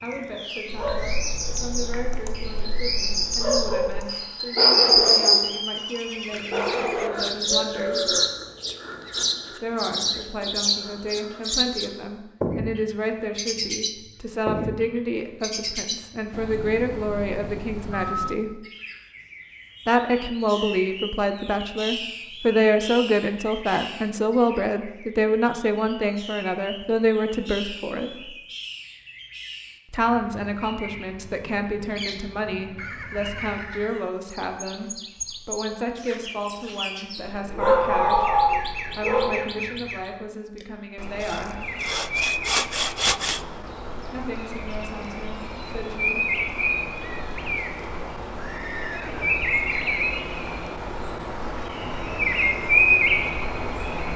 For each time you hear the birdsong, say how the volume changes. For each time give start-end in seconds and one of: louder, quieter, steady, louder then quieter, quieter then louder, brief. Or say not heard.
0.0-54.1 quieter then louder.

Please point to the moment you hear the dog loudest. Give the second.
38 s.